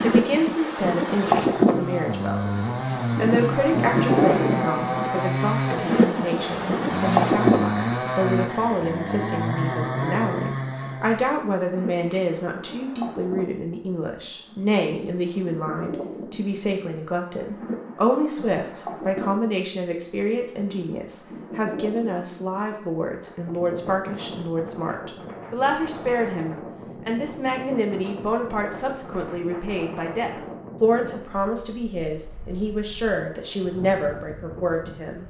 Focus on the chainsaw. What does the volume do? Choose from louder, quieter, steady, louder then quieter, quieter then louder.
steady.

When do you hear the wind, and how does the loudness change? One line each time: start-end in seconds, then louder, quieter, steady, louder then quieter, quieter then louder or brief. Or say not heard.
0.0-35.2 quieter.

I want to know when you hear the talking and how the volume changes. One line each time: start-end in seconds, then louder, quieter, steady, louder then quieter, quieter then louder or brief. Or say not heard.
0.0-35.2 steady.